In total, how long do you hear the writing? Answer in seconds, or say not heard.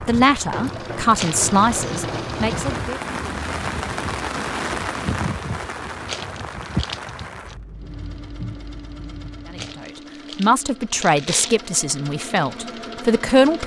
not heard.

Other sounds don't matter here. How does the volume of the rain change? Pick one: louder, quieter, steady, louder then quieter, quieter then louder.
louder then quieter.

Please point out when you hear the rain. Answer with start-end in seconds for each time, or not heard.
0.0-9.8.